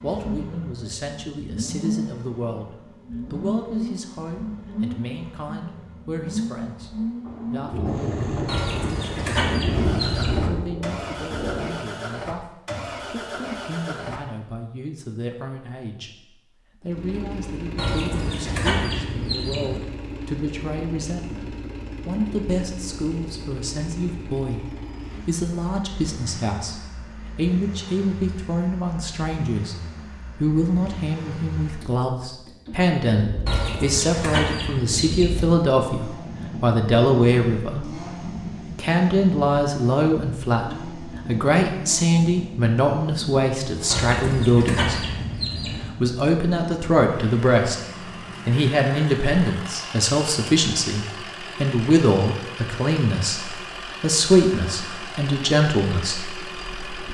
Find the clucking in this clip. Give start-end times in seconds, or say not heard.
8.4-10.5, 17.8-19.8, 33.5-35.5, 43.9-45.9.